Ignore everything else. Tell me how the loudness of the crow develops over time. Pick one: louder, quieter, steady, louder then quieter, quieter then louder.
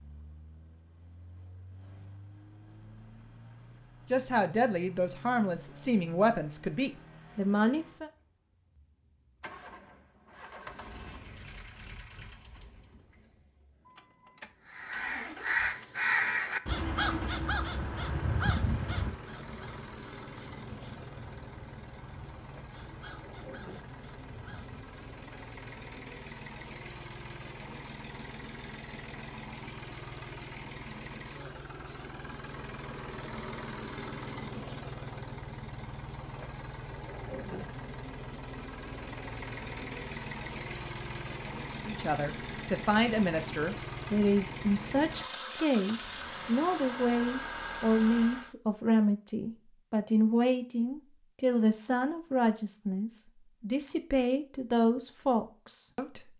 quieter.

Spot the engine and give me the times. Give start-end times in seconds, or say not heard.
0.0-48.5.